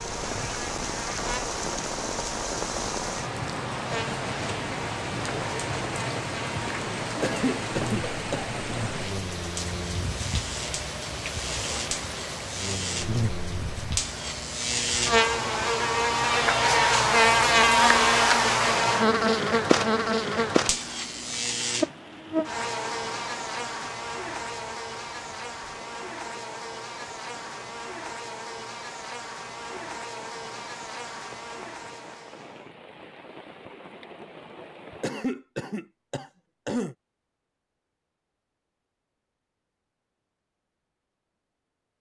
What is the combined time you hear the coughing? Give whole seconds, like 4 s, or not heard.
3 s.